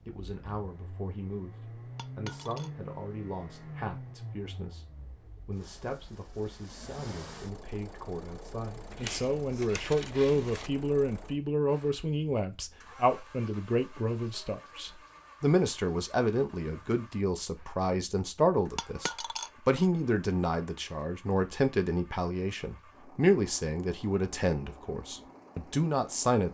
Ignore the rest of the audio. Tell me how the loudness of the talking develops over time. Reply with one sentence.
The loudness of the talking goes up.